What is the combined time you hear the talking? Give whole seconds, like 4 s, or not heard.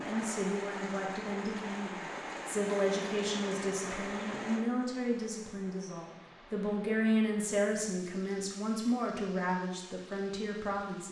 11 s.